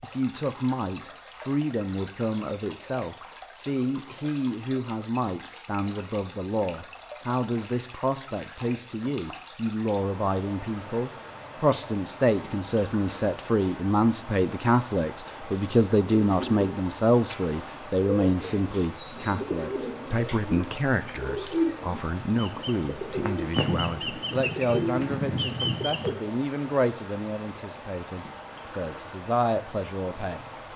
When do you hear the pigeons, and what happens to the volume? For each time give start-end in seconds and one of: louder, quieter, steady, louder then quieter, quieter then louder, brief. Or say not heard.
16.2-26.1 louder.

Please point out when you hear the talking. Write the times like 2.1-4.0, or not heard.
0.0-30.4.